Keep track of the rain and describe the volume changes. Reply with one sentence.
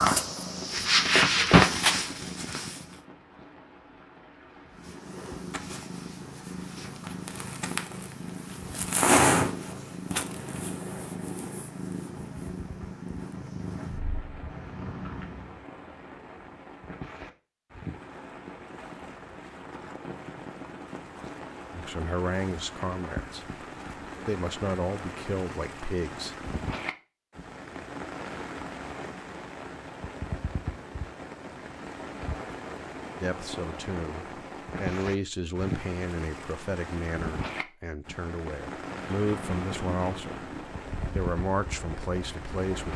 The loudness of the rain goes up.